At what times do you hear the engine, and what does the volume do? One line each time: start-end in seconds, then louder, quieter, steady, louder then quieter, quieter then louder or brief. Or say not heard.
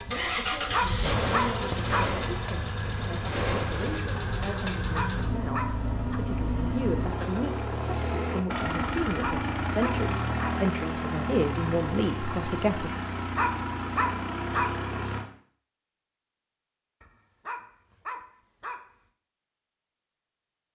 0.0-15.2 steady.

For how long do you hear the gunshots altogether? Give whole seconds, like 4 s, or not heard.
3 s.